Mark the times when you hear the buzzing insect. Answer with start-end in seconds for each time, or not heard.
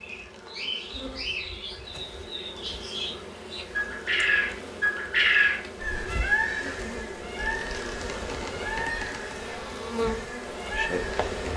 0.0-11.5.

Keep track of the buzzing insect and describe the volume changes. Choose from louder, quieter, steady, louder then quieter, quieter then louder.
louder.